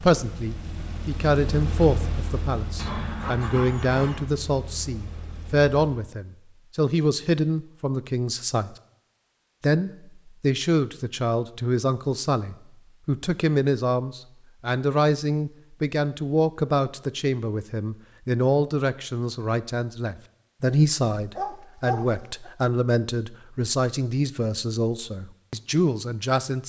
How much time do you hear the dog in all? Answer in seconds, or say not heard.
3 s.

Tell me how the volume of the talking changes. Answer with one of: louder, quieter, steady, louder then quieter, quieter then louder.
steady.